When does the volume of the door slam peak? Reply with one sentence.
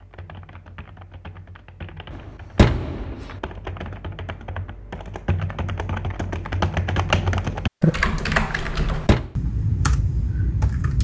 The volume of the door slam peaks at 3 seconds.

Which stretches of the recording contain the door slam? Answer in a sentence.
The door slam can be heard from 2.1 to 3.4 s and from 8.6 to 9.3 s.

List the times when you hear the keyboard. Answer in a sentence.
You can hear the keyboard from 0.0 to 10.9 s.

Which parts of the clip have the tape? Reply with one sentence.
The tape can't be heard in this clip.